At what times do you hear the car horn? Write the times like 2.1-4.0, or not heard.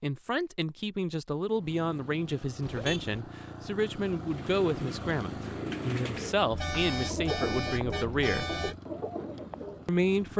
2.6-3.2, 6.5-8.8.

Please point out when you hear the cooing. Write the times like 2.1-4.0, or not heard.
4.3-10.1.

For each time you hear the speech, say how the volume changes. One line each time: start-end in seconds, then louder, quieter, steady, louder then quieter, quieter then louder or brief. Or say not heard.
0.0-8.4 steady
9.8-10.3 brief.